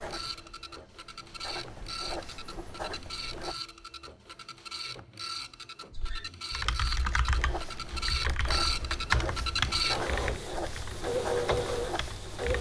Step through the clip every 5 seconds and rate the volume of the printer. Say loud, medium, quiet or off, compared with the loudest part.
medium, loud, loud.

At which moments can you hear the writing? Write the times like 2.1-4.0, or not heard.
0.0-3.5, 7.0-12.4.